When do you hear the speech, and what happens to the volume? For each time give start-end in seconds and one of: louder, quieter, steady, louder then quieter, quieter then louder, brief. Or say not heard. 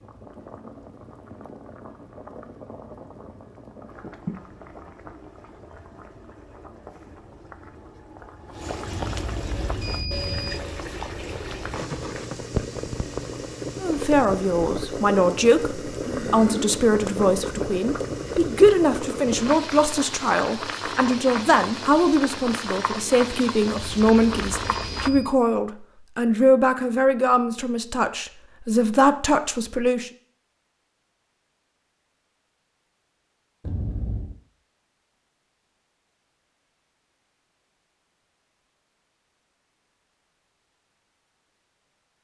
13.8-30.1 steady.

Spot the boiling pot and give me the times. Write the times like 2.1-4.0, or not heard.
0.0-25.1.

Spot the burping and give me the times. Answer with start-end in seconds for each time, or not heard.
16.1-16.8.